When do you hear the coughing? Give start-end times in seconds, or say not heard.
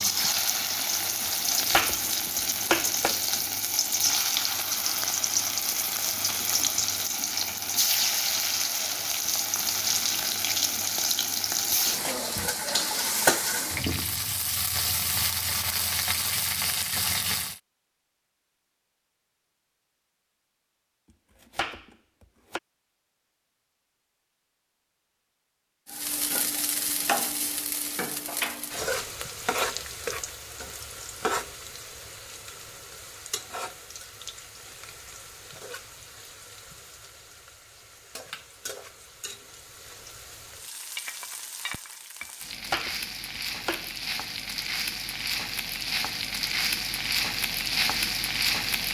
not heard.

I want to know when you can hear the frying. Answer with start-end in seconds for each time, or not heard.
0.0-17.6, 25.9-48.8.